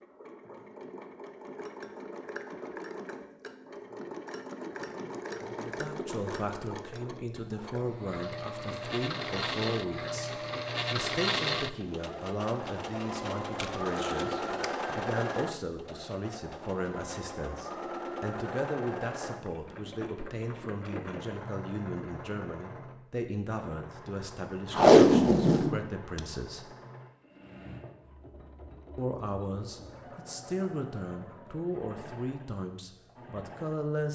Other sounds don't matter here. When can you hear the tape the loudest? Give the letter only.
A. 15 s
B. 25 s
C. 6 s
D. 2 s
B.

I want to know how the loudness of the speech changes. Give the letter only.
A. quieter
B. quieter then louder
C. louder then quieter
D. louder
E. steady
E.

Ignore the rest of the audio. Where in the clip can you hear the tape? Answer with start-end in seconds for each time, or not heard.
13.6-14.7, 24.8-26.2.